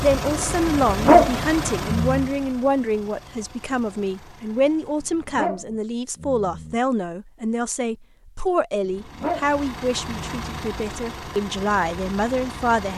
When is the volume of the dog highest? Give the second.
1 s.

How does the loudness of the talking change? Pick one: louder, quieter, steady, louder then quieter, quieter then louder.
steady.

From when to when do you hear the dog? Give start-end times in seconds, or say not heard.
0.8-2.3, 5.0-6.8, 8.8-10.7.